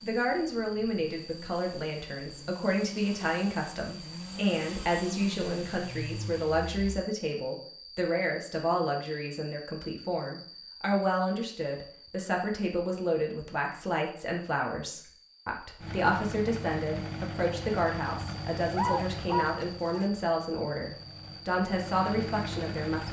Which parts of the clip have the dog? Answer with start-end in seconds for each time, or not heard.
18.2-20.1.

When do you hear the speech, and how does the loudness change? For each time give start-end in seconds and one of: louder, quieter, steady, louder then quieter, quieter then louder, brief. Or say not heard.
0.0-23.0 steady.